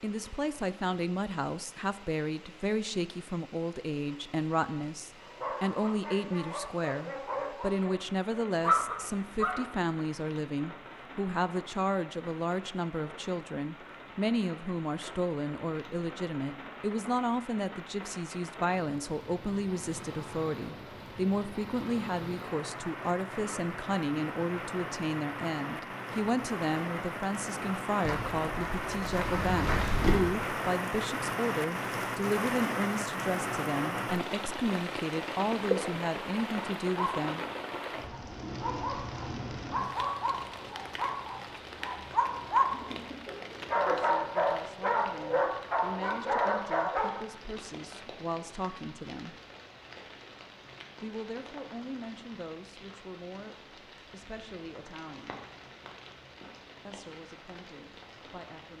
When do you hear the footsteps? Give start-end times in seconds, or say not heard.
28.0-30.2.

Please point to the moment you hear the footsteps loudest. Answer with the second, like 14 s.
30 s.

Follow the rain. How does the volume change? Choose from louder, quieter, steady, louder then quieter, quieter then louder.
louder then quieter.